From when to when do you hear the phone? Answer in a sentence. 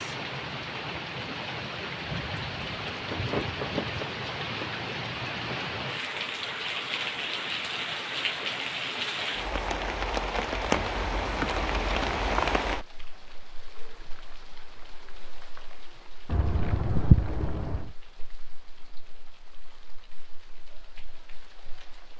You can't hear the phone here.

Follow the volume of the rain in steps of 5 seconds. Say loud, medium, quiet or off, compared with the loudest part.
loud, loud, loud, quiet, quiet.